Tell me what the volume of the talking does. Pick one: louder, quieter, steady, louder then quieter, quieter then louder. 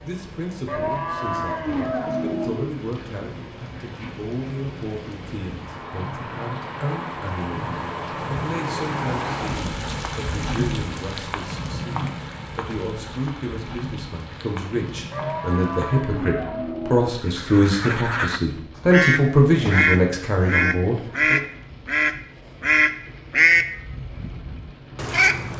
louder.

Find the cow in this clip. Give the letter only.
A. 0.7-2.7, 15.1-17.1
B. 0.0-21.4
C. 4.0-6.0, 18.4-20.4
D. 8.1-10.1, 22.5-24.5
A.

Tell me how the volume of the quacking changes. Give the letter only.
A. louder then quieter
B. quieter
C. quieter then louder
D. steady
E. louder
A.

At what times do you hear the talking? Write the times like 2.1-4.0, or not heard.
0.0-21.4.